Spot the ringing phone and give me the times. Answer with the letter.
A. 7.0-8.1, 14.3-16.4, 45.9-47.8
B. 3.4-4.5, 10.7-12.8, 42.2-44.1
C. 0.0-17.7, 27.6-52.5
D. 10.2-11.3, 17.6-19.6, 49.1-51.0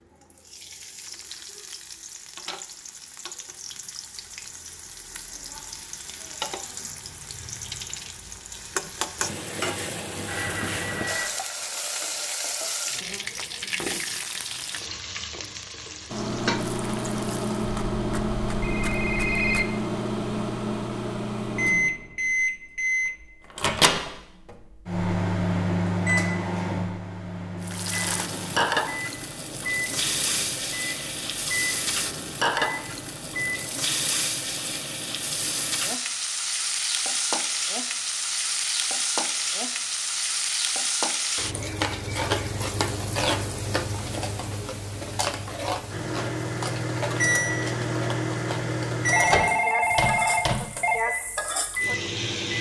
D.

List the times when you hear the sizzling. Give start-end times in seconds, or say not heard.
0.0-17.7, 27.6-52.5.